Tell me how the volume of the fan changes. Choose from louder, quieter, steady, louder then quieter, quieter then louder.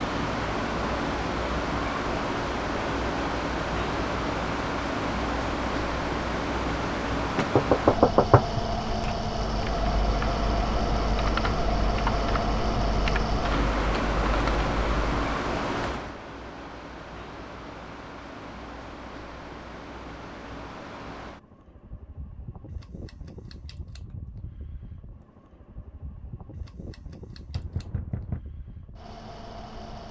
quieter.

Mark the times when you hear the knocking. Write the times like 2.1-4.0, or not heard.
7.3-8.6, 27.6-28.4.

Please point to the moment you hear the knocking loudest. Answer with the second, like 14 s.
8 s.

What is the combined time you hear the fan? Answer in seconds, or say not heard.
30 s.